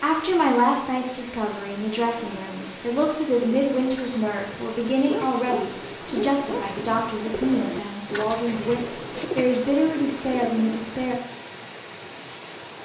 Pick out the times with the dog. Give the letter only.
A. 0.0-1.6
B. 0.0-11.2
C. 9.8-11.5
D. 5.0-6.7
D.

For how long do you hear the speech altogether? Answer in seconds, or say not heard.
11 s.